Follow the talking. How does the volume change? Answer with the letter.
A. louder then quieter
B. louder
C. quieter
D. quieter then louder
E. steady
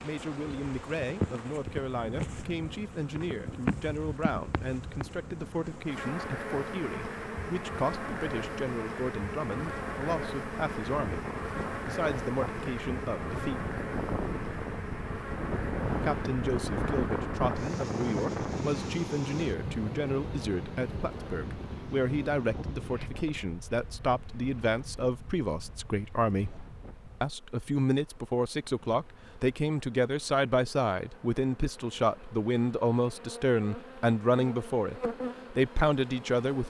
B.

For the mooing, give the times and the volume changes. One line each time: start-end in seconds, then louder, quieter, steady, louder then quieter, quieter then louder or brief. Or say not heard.
not heard.